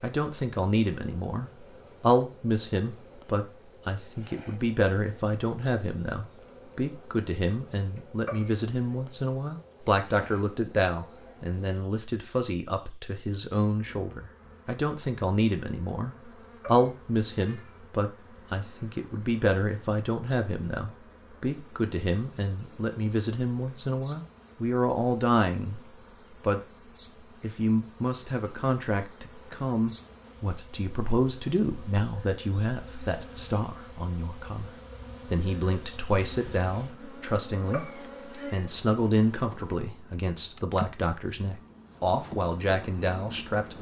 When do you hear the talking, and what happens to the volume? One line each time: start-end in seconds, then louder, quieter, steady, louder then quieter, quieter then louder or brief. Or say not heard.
0.0-26.6 steady
27.4-43.7 steady.